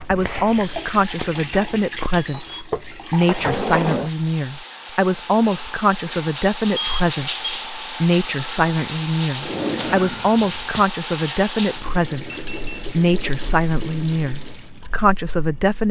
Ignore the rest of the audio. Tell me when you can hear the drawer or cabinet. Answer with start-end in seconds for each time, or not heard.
2.7-4.1, 9.4-10.8.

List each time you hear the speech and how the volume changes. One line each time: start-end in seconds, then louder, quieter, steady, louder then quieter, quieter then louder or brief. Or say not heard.
0.1-15.8 steady.